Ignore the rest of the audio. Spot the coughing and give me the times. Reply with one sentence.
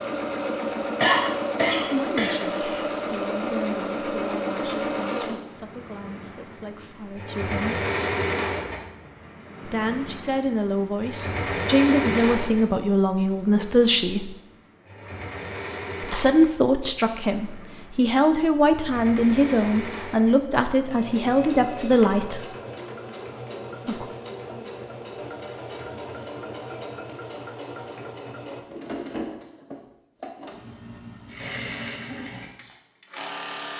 The coughing can be heard from 1.0 to 2.9 s.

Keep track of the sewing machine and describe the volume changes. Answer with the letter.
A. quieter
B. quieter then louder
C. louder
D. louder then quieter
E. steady
A.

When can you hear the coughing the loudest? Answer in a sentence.
The volume of the coughing peaks at 1 second.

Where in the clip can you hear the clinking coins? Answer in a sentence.
The clinking coins can't be heard in this clip.